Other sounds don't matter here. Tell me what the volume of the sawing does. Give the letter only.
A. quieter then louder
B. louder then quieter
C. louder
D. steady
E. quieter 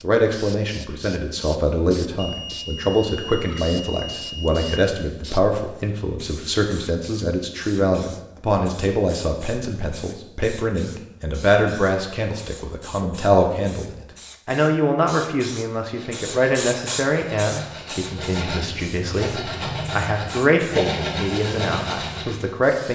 C.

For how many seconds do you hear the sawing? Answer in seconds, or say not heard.
7 s.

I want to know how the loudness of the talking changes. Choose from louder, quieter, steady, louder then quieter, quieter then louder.
steady.